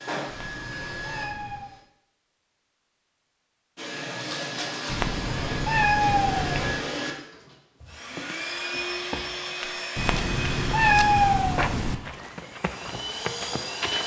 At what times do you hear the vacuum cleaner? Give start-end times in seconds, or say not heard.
0.0-1.9, 3.8-14.0.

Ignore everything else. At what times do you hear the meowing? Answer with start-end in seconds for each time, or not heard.
0.2-1.7, 4.8-6.8, 9.9-11.9.